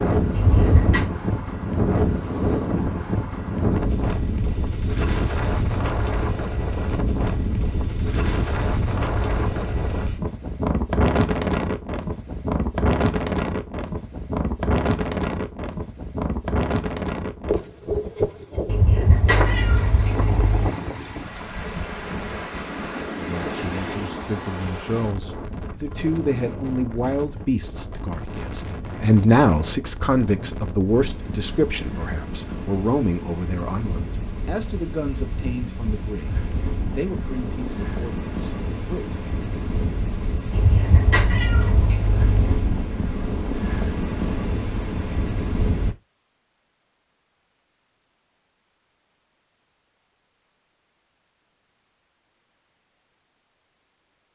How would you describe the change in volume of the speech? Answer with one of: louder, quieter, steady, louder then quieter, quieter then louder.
louder then quieter.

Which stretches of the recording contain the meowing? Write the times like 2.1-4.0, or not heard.
0.3-1.1, 18.6-20.7, 40.5-42.5.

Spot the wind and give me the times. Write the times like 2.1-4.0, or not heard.
0.0-46.0.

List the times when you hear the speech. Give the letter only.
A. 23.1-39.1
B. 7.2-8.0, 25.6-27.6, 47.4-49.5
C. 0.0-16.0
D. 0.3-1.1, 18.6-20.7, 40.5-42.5
A.